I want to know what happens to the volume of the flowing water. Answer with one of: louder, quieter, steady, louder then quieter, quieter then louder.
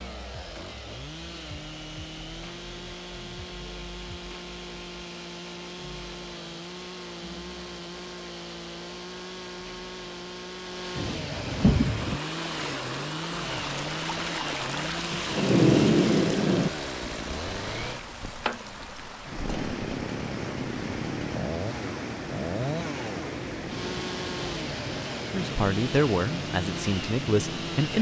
steady.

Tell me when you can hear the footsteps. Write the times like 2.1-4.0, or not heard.
not heard.